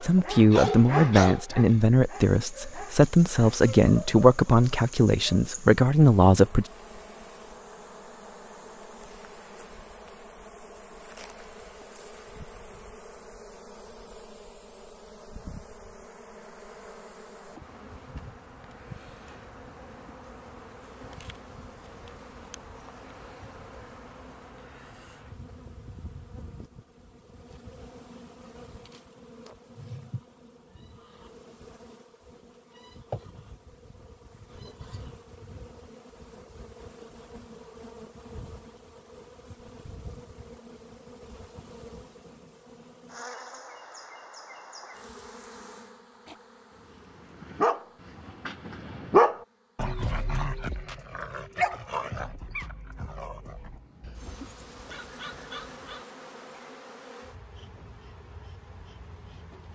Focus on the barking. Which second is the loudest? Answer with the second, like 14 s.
49 s.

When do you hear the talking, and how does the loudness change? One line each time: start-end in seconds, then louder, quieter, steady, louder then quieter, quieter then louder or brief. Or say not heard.
0.0-6.7 steady.